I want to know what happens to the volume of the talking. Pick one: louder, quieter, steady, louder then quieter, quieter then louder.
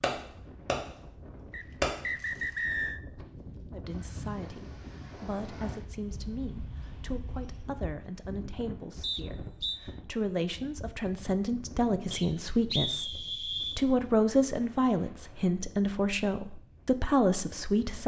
louder.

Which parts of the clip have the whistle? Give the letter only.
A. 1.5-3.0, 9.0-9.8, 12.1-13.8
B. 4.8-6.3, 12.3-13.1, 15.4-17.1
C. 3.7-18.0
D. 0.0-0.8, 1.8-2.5
A.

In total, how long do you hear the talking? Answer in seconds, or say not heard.
14 s.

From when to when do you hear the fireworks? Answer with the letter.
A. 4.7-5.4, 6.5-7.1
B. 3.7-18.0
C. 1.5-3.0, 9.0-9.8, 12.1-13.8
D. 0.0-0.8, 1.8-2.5
D.